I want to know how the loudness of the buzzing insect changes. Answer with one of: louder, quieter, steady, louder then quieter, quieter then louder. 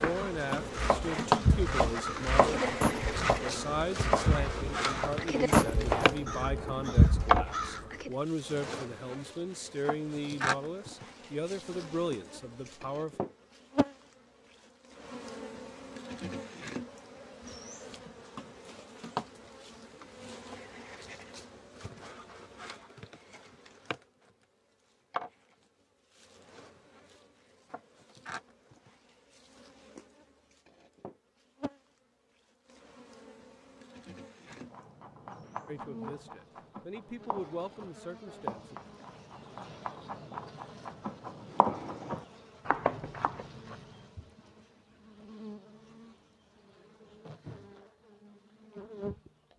quieter.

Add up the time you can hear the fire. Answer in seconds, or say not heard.
not heard.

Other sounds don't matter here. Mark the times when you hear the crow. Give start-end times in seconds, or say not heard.
0.5-8.1.